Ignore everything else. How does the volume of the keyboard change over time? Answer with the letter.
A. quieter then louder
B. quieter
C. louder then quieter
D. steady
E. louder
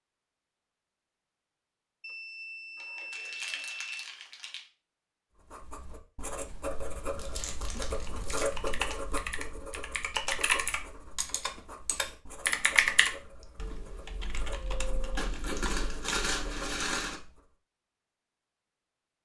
C.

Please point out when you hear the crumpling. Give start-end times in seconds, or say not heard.
2.8-4.6, 7.2-8.4, 15.2-17.2.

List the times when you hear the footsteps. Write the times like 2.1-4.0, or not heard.
not heard.